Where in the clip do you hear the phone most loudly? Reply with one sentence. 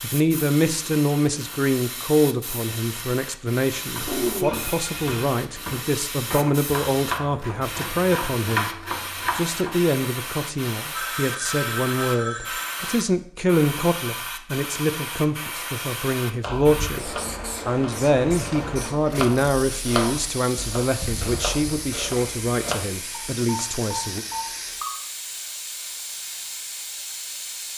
The volume of the phone peaks at 4 seconds.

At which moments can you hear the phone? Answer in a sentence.
The phone can be heard from 4.0 to 5.2 s, from 10.9 to 12.8 s and from 23.1 to 24.9 s.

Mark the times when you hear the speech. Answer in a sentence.
The speech can be heard from 0.0 to 8.7 s and from 9.3 to 24.2 s.